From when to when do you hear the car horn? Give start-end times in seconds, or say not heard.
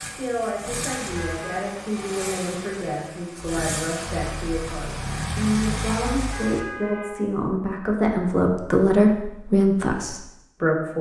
0.9-1.7, 6.0-7.2.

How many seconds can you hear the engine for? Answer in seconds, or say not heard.
7 s.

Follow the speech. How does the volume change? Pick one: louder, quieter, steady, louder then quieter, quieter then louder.
louder.